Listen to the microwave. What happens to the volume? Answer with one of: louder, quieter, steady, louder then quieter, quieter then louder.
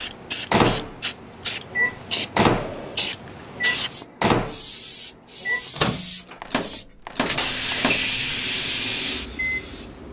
quieter.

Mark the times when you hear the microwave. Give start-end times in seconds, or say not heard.
0.0-10.0.